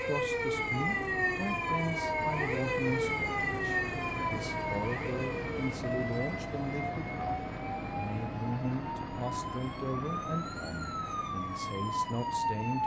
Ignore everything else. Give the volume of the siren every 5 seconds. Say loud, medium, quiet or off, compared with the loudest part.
loud, medium, loud.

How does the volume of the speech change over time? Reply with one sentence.
The loudness of the speech stays about the same.